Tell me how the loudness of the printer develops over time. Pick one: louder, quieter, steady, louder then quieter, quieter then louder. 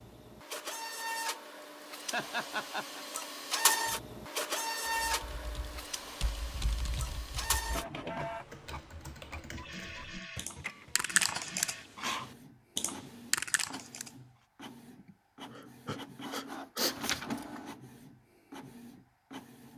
quieter then louder.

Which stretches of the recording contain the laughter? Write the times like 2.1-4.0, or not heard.
2.1-3.0.